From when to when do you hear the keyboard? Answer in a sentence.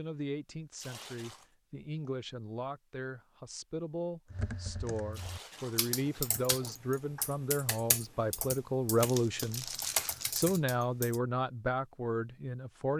You can hear the keyboard from 4.3 to 11.2 s.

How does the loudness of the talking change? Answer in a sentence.
The loudness of the talking goes up.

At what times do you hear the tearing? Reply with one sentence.
The tearing can be heard from 0.8 to 1.5 s, from 5.1 to 6.5 s and from 9.0 to 10.4 s.